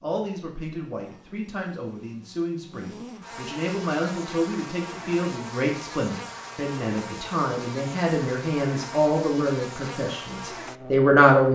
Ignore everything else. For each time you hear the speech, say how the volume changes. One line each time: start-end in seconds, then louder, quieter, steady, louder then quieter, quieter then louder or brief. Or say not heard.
0.0-11.5 louder.